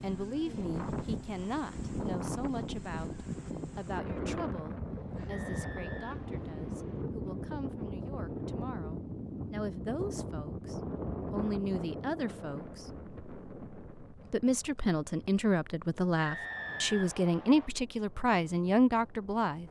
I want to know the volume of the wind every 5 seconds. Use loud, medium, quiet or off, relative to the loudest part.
loud, loud, loud, quiet.